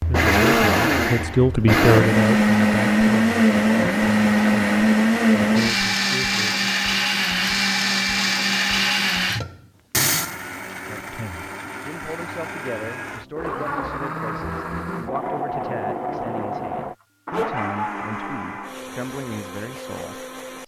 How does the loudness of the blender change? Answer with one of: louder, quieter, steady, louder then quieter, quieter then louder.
quieter.